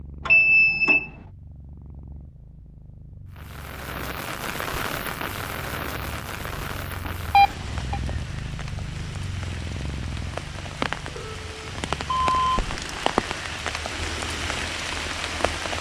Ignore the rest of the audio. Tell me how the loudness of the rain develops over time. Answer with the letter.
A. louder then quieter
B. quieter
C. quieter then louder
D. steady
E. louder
C.